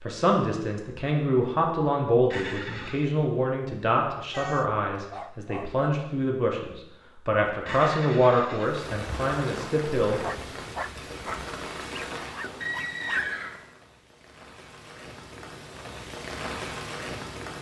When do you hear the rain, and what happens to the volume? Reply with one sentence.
The rain can be heard from 8.6 to 17.5 s, getting quieter then louder.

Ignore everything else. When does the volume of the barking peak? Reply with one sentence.
The loudest moment of the barking is at 13 seconds.